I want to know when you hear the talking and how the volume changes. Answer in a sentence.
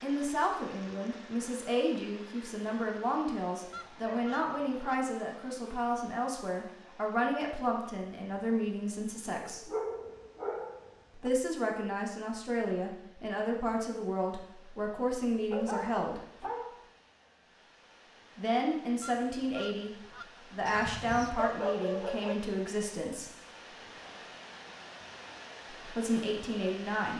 The talking can be heard from 0.0 to 9.7 s, at a steady volume; from 11.2 to 16.2 s, at a steady volume; briefly from 18.4 to 19.9 s; briefly from 20.5 to 23.3 s; and briefly from 25.9 to 27.1 s.